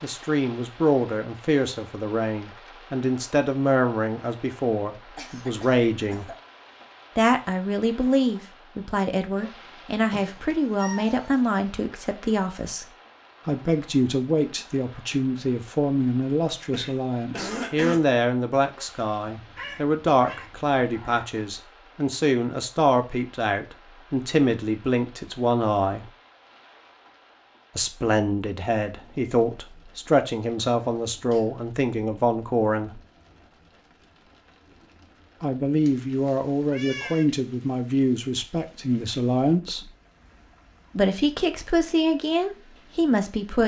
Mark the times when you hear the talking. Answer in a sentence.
The talking can be heard from 0.0 to 6.3 s, from 7.2 to 12.8 s, from 13.4 to 26.1 s, from 27.8 to 33.0 s, from 35.4 to 39.9 s and from 41.0 to 43.6 s.